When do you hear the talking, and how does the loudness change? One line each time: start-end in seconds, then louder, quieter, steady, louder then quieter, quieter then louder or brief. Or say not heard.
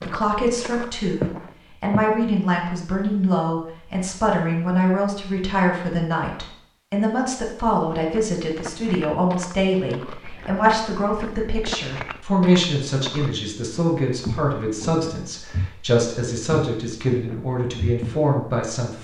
0.0-18.9 steady.